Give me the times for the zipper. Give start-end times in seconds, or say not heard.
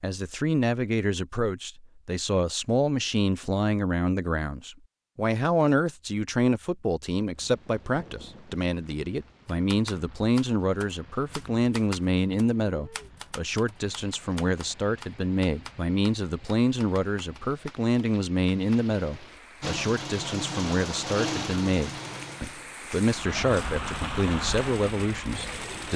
not heard.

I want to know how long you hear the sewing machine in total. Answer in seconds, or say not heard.
6 s.